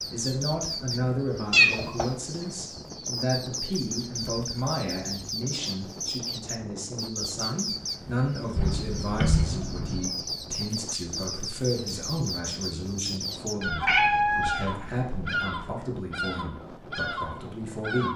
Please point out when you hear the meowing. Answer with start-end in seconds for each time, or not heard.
1.5-2.0, 8.6-10.1, 13.7-15.3.